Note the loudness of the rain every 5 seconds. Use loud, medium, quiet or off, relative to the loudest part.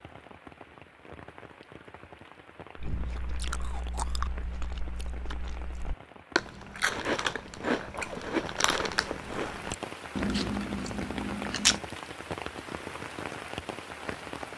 medium, medium, loud.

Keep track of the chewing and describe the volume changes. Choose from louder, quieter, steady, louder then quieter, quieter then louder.
louder.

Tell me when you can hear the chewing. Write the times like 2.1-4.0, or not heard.
2.8-11.8.